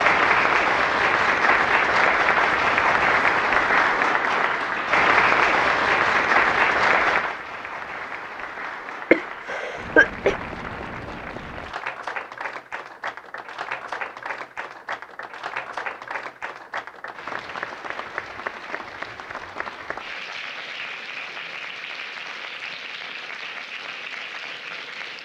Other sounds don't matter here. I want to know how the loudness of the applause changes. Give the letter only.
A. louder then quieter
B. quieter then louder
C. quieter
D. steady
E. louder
C.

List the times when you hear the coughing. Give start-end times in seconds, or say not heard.
9.1-10.3.